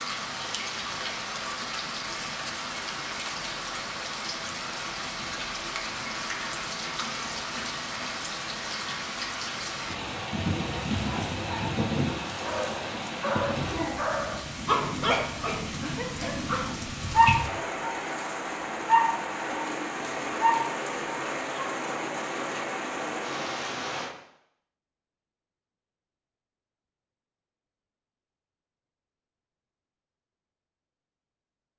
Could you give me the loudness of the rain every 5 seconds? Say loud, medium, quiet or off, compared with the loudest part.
loud, loud, loud, loud, loud, off, off.